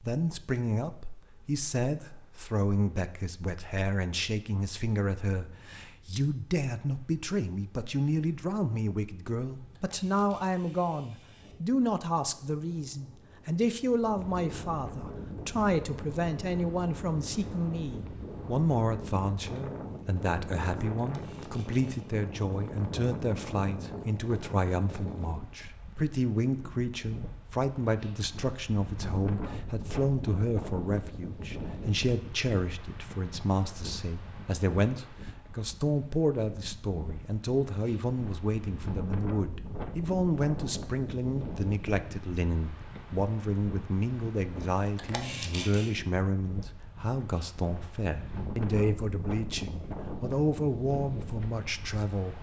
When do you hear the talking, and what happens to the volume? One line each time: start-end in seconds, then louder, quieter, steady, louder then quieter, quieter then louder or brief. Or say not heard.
0.0-52.3 steady.